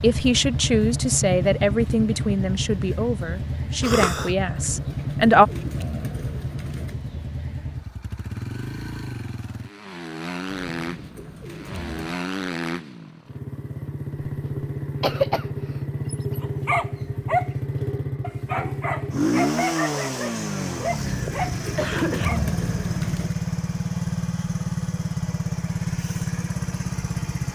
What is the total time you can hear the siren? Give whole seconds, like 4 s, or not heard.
not heard.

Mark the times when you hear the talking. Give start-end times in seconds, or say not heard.
0.0-5.5.